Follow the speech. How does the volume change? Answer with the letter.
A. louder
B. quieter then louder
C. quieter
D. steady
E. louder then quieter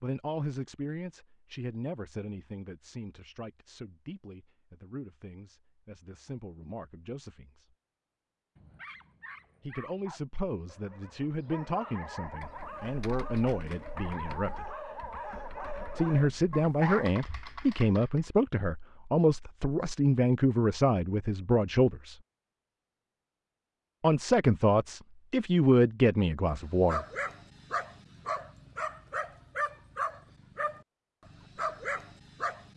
A.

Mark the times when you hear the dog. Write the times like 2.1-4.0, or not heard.
8.6-17.1, 26.4-32.7.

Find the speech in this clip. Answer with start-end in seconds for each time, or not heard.
0.0-7.7, 9.6-14.7, 15.9-22.1, 24.0-27.1.